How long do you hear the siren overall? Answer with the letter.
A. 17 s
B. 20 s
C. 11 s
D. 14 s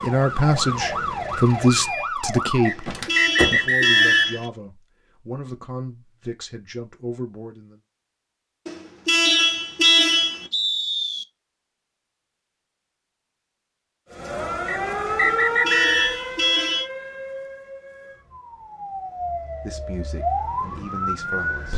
C.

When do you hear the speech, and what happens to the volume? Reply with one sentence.
The speech can be heard from 0.0 to 7.8 s, getting quieter; and briefly from 19.6 to 21.7 s.